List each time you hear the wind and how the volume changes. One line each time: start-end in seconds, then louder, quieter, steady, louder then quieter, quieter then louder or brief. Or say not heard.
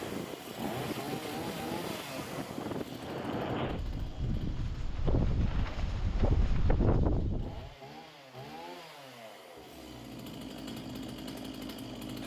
0.0-7.8 louder.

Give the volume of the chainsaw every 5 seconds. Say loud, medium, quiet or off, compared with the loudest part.
loud, medium, loud.